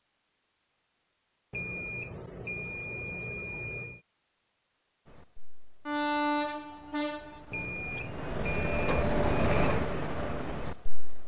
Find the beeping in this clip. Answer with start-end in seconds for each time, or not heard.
1.5-4.0, 7.5-9.1.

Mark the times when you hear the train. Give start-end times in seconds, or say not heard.
5.0-11.2.